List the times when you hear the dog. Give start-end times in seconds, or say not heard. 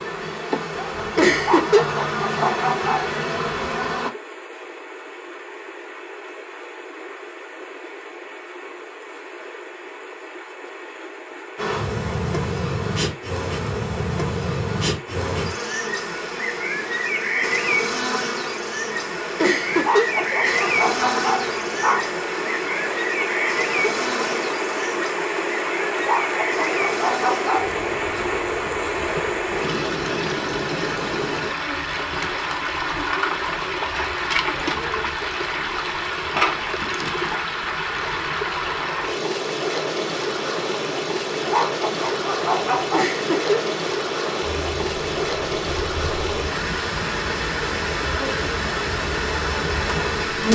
1.4-3.1, 19.8-22.1, 25.9-27.8, 41.4-43.1.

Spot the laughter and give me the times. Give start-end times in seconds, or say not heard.
1.1-1.9, 19.4-20.6, 42.9-43.6.